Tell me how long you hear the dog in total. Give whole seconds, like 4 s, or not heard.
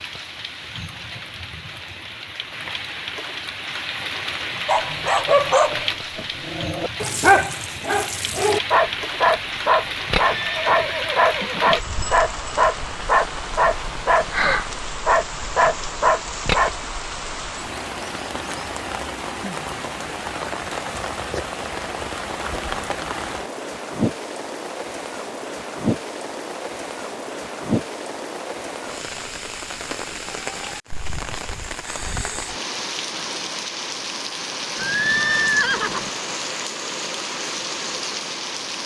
12 s.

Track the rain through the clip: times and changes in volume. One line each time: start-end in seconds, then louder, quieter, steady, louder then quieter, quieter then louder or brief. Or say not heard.
0.0-38.8 steady.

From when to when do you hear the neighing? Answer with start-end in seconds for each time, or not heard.
10.3-11.8, 34.8-36.1.